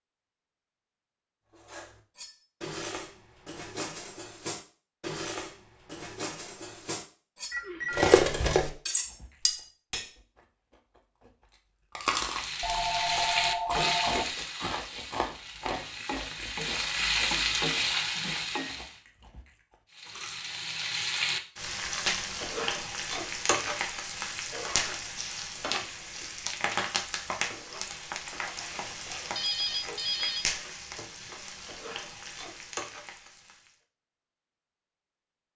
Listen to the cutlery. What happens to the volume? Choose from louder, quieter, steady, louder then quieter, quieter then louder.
louder.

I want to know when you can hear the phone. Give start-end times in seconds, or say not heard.
7.5-8.2, 12.6-14.3, 29.4-30.4.